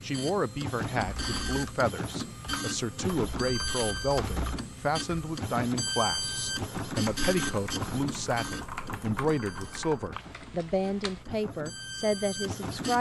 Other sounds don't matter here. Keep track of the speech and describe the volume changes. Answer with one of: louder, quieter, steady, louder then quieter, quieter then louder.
steady.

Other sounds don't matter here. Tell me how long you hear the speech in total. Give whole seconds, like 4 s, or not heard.
13 s.